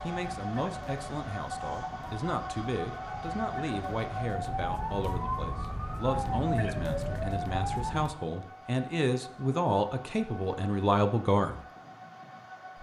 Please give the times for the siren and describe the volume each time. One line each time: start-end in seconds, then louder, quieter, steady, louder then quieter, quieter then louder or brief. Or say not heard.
0.0-8.2 louder.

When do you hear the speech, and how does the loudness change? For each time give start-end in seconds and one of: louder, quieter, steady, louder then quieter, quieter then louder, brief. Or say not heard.
0.0-11.7 louder.